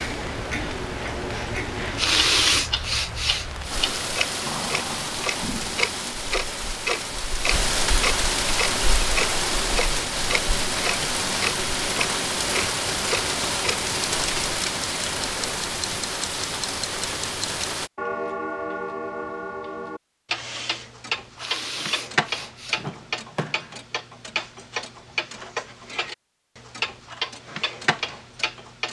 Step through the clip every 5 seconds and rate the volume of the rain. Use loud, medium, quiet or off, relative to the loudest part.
medium, loud, loud, loud, off, off.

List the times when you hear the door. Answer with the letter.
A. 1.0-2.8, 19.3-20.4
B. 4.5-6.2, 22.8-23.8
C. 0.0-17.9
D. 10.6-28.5
B.